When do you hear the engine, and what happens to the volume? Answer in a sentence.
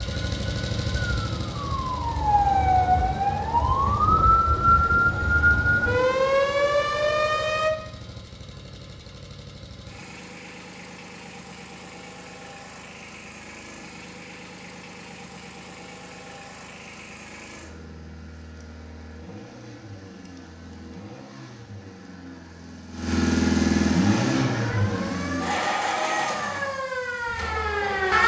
You can hear the engine from 0.0 to 28.2 s, getting quieter then louder.